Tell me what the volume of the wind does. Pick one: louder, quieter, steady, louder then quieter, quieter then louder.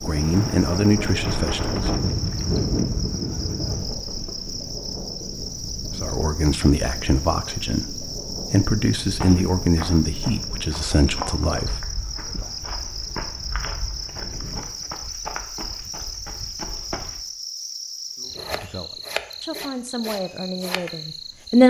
quieter.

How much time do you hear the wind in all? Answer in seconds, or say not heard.
15 s.